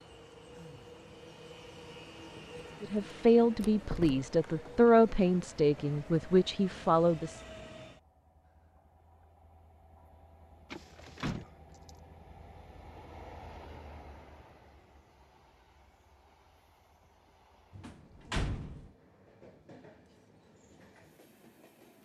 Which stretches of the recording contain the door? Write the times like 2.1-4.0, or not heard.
3.6-4.2, 10.7-11.9, 17.8-18.9.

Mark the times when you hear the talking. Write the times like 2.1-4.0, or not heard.
2.8-7.4.